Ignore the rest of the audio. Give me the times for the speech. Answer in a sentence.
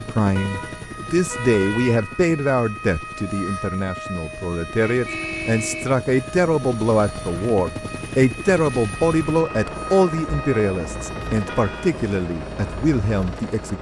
The speech can be heard from 0.1 to 13.7 s.